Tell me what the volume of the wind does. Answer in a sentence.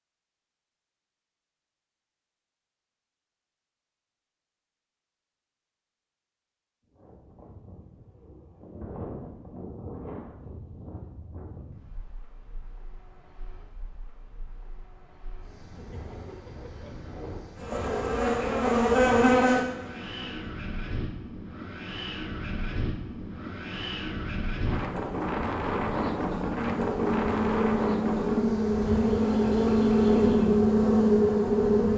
The loudness of the wind goes down, then up.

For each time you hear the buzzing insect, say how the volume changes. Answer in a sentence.
You can hear the buzzing insect briefly from 17.6 to 20.5 s; and from 26.4 to 31.9 s, getting louder.